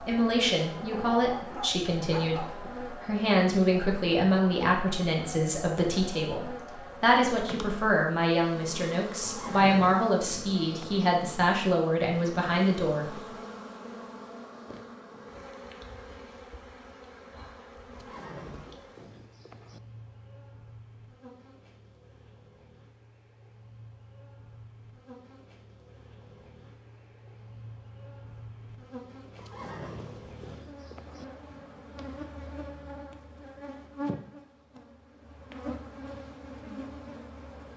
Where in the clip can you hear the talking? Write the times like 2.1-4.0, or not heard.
0.0-13.2.